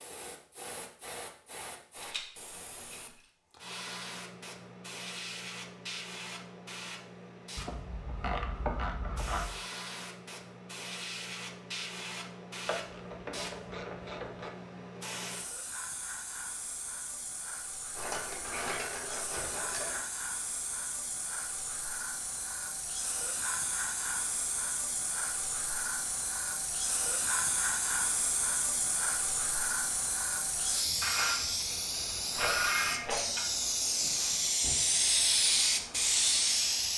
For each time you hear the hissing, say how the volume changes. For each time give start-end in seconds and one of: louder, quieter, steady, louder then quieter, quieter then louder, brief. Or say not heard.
0.0-36.9 louder.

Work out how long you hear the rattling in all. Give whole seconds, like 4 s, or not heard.
4 s.